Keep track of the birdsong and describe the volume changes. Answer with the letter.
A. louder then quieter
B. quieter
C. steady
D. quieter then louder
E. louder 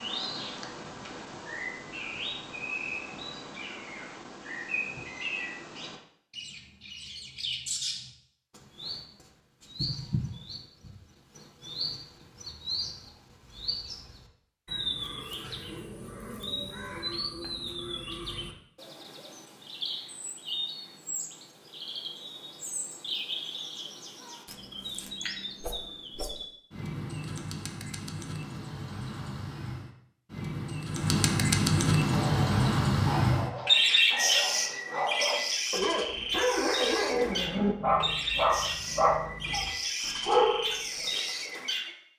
E.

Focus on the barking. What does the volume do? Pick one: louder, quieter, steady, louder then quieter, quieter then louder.
louder.